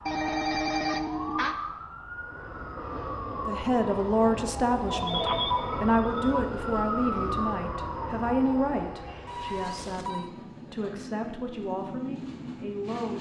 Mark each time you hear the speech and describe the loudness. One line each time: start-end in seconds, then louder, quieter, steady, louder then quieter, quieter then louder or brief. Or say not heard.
3.5-13.1 quieter.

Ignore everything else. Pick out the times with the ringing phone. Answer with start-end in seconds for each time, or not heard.
0.1-1.6, 4.8-6.5, 9.2-10.3.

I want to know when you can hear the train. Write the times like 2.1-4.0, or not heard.
2.1-13.1.